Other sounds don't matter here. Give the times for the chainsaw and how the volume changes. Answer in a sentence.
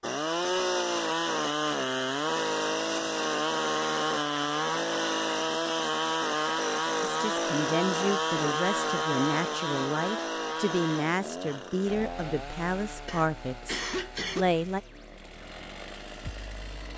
The chainsaw can be heard from 0.0 to 16.9 s, getting quieter.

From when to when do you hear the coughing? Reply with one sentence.
The coughing can be heard from 13.1 to 14.4 s.